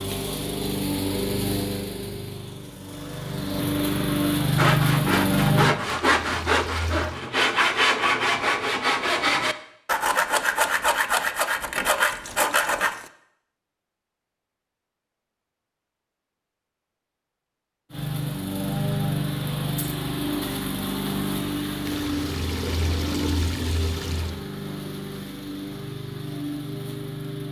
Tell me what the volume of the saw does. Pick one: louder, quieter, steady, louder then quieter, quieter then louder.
steady.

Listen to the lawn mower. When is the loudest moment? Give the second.
5 s.